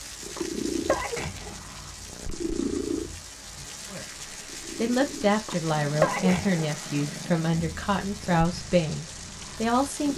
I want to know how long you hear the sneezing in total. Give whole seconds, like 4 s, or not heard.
3 s.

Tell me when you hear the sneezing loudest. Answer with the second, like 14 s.
6 s.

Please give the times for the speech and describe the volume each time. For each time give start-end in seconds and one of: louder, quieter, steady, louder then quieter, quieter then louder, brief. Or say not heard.
3.9-10.1 steady.